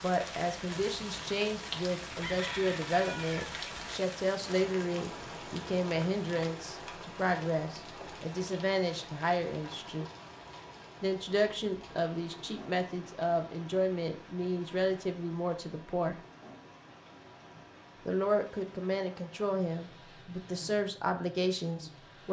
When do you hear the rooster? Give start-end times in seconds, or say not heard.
2.1-3.5.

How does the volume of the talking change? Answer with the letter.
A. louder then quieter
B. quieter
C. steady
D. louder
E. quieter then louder
C.